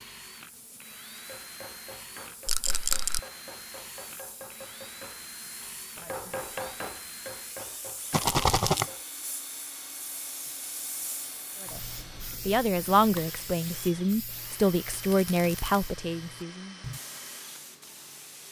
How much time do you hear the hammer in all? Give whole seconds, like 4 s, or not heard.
8 s.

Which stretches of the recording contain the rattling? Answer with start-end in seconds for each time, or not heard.
2.5-3.2, 8.1-8.9, 14.9-15.8.